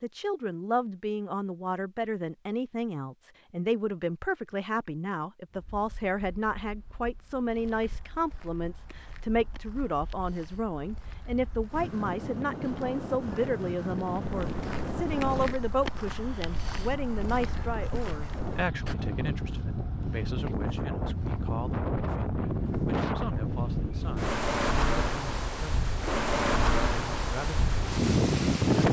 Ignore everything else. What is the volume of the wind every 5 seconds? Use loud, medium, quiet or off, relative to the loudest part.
off, quiet, medium, medium, loud, loud.